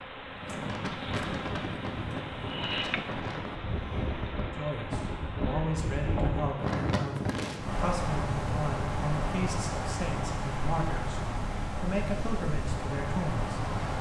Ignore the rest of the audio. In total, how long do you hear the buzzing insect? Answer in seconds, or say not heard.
7 s.